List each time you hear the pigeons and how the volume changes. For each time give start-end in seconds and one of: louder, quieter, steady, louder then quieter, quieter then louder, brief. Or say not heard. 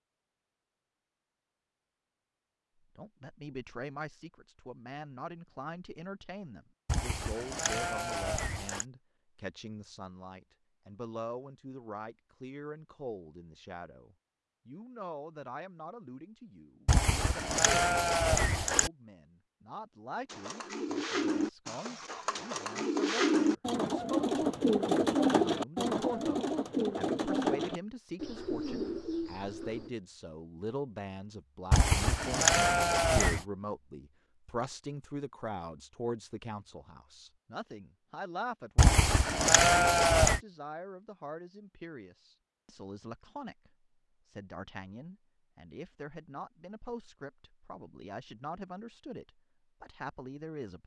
20.2-29.9 louder then quieter.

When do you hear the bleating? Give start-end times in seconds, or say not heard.
6.8-8.8, 16.9-18.9, 31.7-33.5, 38.8-40.4.